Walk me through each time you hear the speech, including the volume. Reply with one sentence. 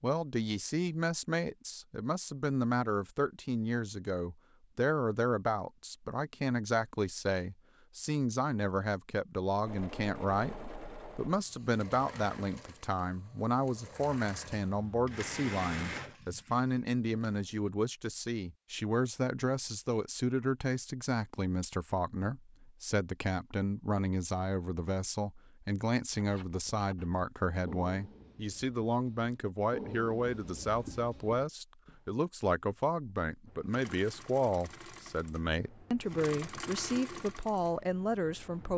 You can hear the speech from 0.0 to 38.7 s, at a steady volume.